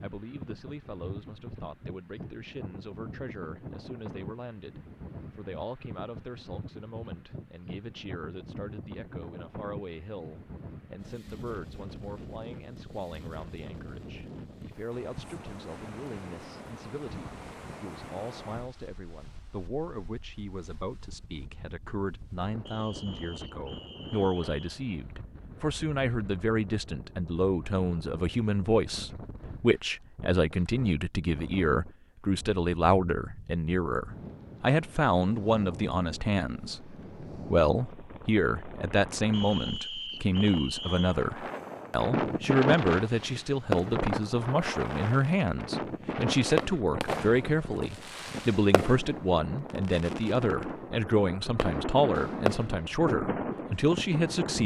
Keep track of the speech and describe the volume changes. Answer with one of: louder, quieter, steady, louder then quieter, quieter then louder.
louder.